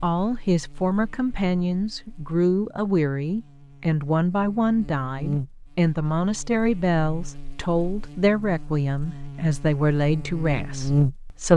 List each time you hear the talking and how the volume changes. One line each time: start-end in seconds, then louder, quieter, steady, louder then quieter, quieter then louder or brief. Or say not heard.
0.0-11.5 steady.